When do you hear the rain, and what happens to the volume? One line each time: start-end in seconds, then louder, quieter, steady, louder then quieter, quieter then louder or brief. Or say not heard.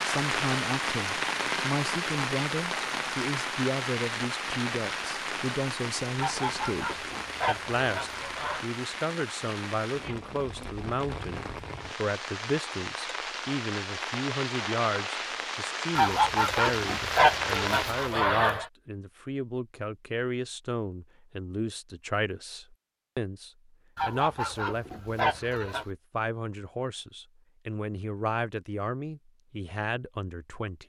0.0-18.2 quieter then louder.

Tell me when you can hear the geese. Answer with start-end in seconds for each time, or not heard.
6.2-8.7, 15.9-18.6, 23.9-25.9.